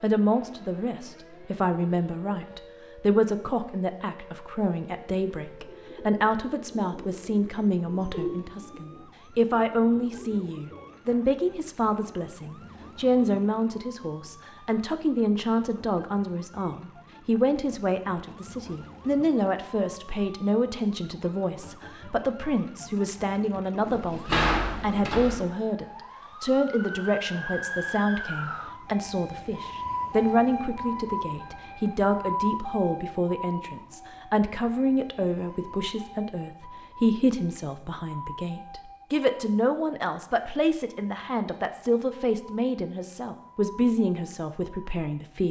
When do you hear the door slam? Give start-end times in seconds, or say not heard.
23.9-25.4.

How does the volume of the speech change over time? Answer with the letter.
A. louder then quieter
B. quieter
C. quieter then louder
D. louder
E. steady
E.